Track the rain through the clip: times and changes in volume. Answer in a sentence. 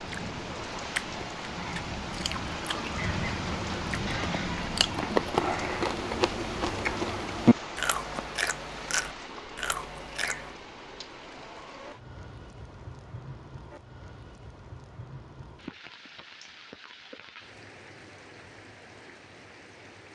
You can hear the rain from 0.0 to 20.0 s, getting quieter.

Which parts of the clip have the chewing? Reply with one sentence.
You can hear the chewing from 0.0 to 10.6 s.